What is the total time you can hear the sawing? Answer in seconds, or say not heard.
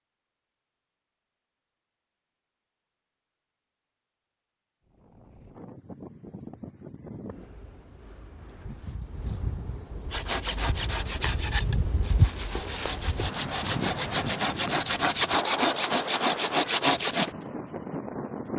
7 s.